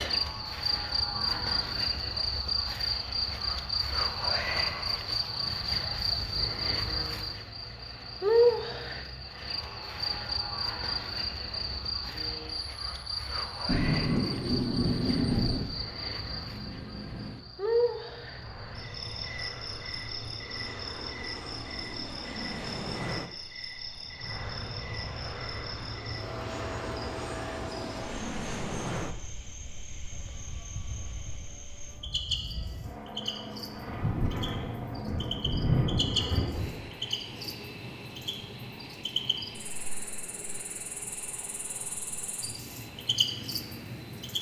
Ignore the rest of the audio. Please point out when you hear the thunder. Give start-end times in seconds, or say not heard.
13.7-15.7, 33.8-37.0.